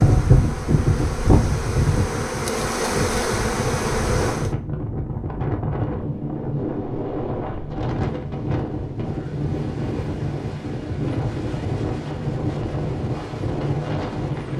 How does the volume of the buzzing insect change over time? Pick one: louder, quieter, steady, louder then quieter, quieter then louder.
louder.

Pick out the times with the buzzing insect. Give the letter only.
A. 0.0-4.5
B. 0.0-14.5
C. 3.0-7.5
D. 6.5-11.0
A.